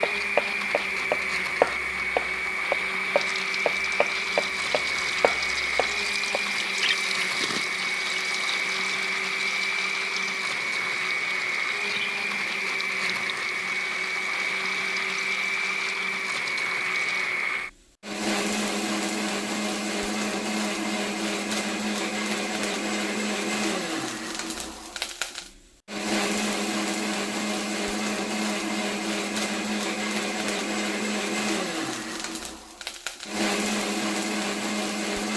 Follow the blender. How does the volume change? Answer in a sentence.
The volume of the blender stays about the same.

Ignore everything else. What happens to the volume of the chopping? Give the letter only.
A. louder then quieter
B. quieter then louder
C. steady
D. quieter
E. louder
A.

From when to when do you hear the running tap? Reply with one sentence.
You can hear the running tap from 3.1 to 17.4 s.